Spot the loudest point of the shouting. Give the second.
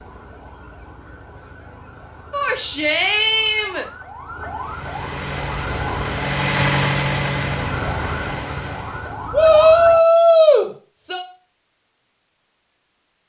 10 s.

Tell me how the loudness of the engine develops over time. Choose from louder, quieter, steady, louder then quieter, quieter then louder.
louder then quieter.